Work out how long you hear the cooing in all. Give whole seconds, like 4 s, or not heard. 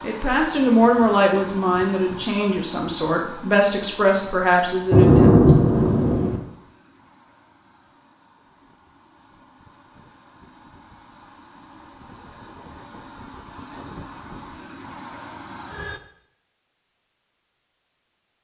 not heard.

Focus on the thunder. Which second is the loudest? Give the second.
5 s.